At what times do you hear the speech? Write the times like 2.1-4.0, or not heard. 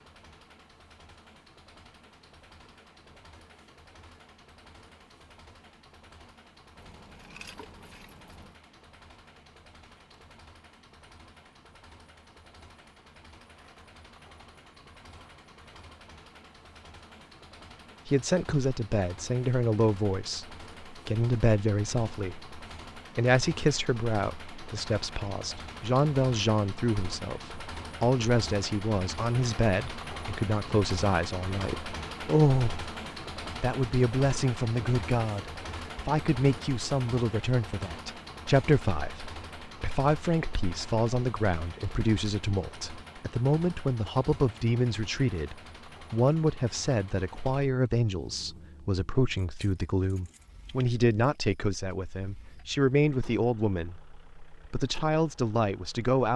18.1-32.9, 33.6-56.3.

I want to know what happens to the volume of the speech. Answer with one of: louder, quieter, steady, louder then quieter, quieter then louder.
steady.